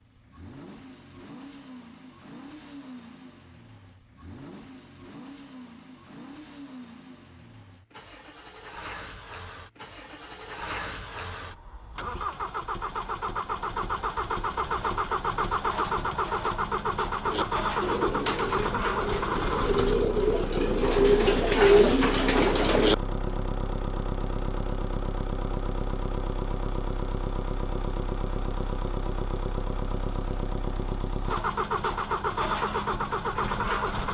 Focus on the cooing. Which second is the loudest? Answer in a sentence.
The loudest moment of the cooing is at 22 seconds.